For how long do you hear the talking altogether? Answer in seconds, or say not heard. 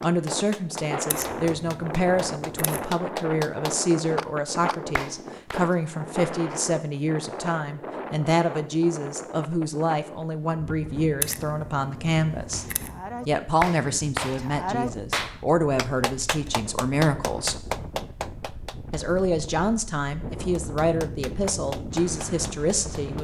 21 s.